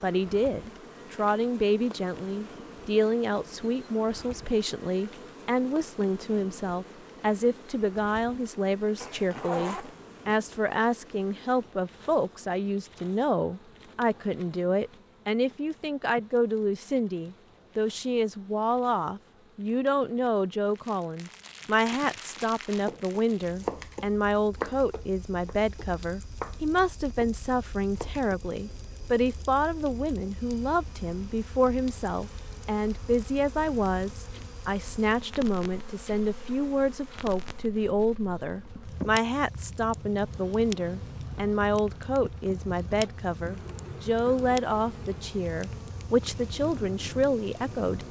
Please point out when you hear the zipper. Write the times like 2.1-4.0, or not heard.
9.0-10.2.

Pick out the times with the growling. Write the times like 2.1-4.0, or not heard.
not heard.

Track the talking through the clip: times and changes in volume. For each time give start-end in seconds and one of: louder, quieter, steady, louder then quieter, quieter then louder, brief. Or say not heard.
0.0-48.0 steady.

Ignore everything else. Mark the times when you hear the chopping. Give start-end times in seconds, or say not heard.
22.2-28.4.